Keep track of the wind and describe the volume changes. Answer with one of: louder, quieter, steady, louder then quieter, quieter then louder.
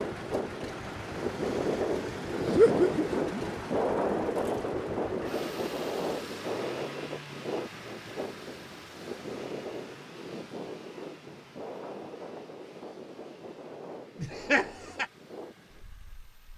quieter.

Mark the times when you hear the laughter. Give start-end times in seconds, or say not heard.
2.5-3.4, 14.2-15.1.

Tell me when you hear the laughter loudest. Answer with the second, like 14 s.
3 s.